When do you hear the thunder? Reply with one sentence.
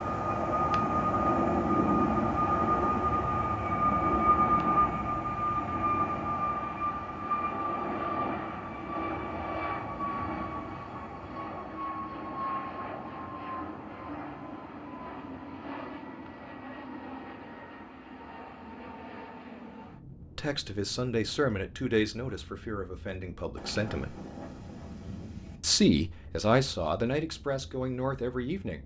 The thunder can be heard from 23.6 to 25.6 s.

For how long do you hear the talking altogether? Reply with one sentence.
The talking can be heard for 7 seconds in total.